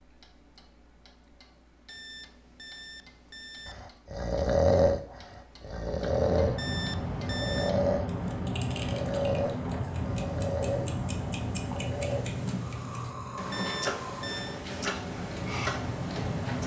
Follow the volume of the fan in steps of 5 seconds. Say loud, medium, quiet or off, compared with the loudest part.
off, loud, loud, loud.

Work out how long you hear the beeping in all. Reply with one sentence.
You can hear the beeping for 4 seconds altogether.